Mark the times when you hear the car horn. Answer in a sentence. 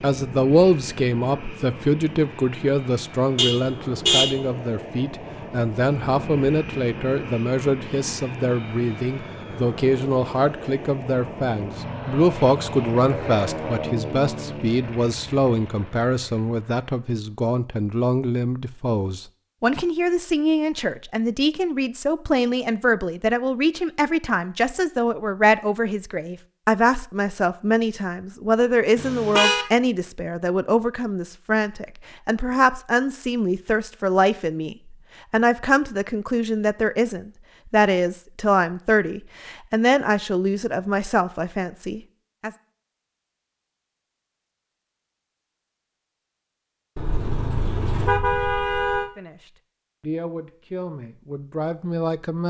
The car horn can be heard from 3.4 to 4.3 s, from 28.9 to 29.6 s and from 47.0 to 49.1 s.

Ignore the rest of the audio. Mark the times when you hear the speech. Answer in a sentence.
You can hear the speech from 0.0 to 42.5 s and from 49.1 to 52.4 s.